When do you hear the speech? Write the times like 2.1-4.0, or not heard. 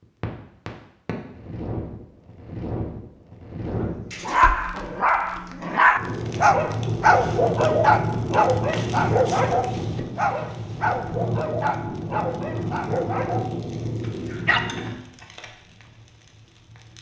not heard.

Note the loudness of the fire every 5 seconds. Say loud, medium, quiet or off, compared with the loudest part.
medium, loud, loud, quiet.